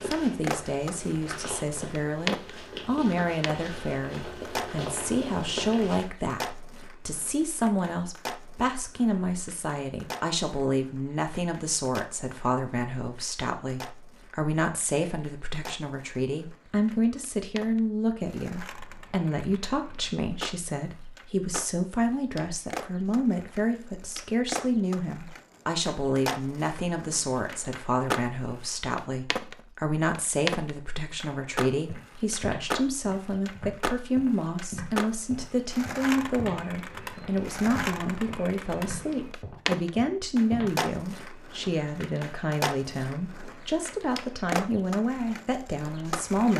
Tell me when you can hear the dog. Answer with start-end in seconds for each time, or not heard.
not heard.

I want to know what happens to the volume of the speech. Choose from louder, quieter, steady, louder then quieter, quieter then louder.
steady.